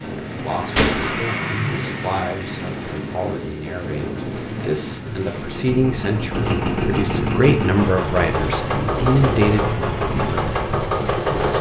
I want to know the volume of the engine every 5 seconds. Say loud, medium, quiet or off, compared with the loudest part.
medium, loud, loud.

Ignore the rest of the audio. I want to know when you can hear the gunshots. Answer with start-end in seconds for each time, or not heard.
0.8-1.2.